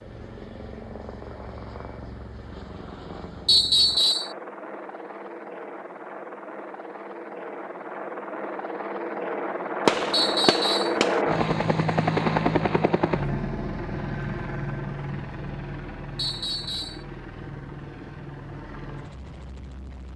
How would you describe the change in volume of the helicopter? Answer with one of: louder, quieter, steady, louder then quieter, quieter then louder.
louder then quieter.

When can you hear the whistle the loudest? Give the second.
4 s.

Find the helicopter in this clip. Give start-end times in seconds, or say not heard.
0.0-20.1.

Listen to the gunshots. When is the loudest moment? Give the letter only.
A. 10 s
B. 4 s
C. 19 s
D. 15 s
A.